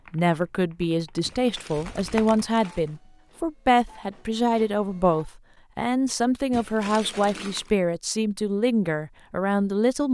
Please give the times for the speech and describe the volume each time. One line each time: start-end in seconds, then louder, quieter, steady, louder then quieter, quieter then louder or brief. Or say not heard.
0.1-10.0 steady.